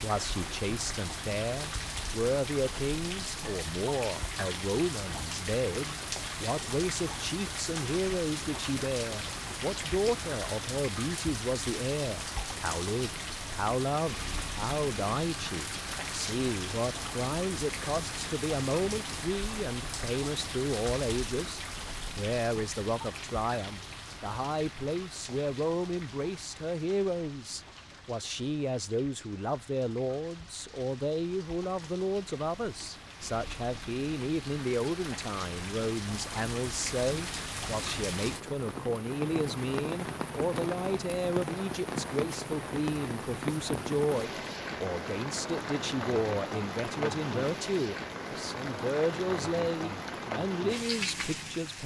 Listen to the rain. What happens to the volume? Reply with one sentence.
The volume of the rain goes down, then up.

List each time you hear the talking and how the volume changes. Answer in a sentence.
The talking can be heard from 0.0 to 51.8 s, at a steady volume.